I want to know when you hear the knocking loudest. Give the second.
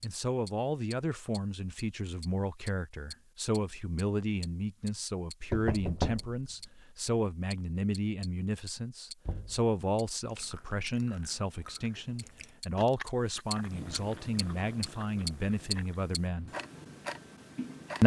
6 s.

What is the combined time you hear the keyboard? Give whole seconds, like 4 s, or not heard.
not heard.